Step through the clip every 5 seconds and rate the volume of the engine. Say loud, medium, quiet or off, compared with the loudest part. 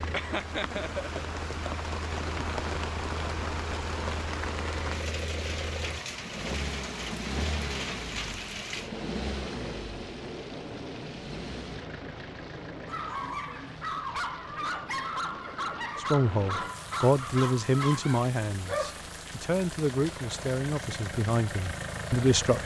loud, loud, medium, medium, loud.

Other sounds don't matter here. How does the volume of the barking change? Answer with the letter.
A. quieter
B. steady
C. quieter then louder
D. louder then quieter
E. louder
B.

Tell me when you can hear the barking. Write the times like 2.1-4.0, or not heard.
12.8-19.1.